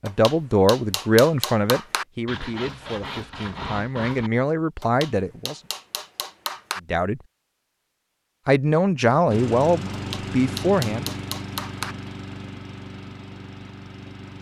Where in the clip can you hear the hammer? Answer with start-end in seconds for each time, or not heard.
0.1-2.0, 4.8-6.8, 9.9-11.9.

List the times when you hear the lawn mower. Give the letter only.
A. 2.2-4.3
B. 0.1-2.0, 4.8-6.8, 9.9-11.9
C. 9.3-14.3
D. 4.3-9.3
C.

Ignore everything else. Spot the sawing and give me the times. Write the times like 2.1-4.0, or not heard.
2.2-4.3.